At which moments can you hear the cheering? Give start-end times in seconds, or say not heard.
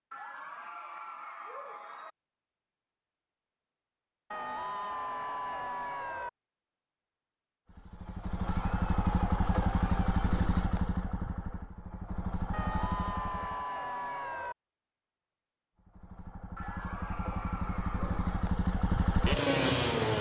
0.1-2.1, 4.3-6.3, 8.3-10.1, 12.5-14.6, 16.6-18.6.